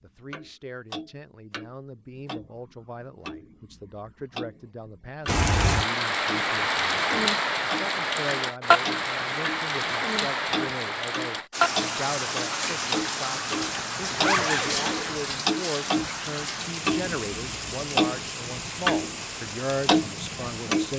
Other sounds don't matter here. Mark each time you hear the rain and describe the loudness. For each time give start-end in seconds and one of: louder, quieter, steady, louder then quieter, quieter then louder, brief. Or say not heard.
5.2-20.9 quieter.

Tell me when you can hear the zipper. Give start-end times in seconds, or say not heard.
13.6-15.3.